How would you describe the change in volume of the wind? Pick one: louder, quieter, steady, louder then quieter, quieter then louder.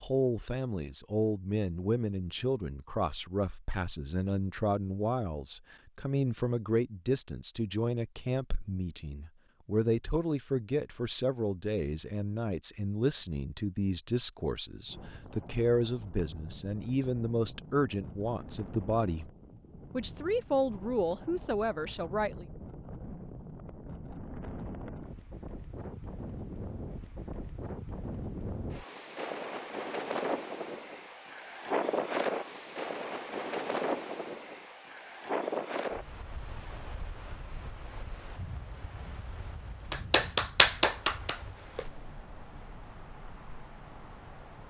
louder then quieter.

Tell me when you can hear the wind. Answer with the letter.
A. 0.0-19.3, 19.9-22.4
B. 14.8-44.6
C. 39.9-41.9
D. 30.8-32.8
B.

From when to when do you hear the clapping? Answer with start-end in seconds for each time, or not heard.
39.9-41.9.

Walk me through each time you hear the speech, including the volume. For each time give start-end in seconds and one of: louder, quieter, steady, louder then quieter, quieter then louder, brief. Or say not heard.
0.0-19.3 steady
19.9-22.4 brief.